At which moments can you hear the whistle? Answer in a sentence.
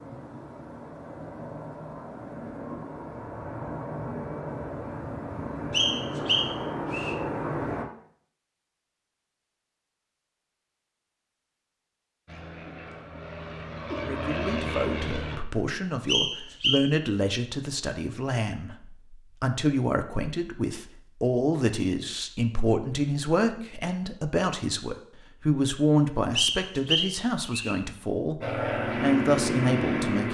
You can hear the whistle from 5.7 to 7.2 s, from 16.1 to 16.9 s and from 26.4 to 27.8 s.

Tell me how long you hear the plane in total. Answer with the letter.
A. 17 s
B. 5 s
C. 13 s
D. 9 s
C.